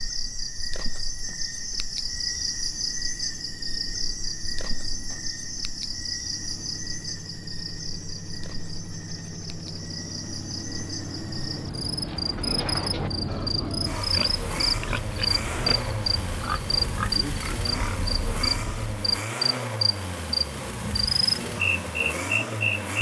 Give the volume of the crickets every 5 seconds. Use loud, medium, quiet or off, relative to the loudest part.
medium, medium, medium, loud, loud.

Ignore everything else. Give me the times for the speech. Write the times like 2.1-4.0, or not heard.
not heard.